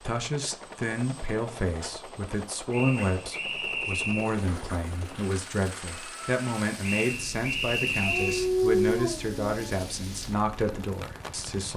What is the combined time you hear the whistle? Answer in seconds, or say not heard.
3 s.